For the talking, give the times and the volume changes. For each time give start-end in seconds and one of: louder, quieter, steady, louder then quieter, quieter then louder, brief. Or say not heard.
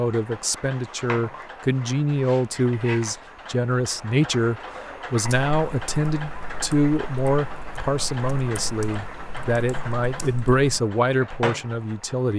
0.0-12.3 steady.